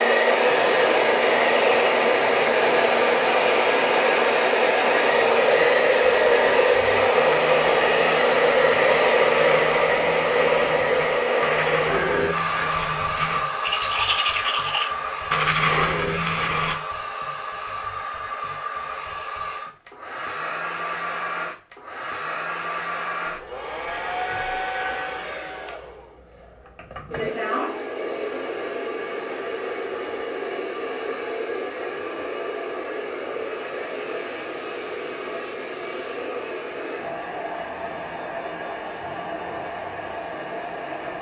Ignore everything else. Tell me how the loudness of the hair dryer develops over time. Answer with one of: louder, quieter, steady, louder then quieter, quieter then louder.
quieter.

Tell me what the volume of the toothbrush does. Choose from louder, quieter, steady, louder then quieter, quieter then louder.
louder.